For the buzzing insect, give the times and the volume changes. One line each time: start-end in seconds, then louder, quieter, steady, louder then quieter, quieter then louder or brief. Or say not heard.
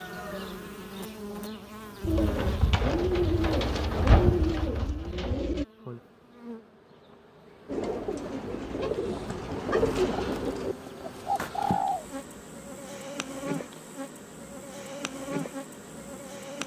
0.0-16.6 quieter then louder.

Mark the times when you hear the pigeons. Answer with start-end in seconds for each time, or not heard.
2.0-5.7, 7.7-12.2.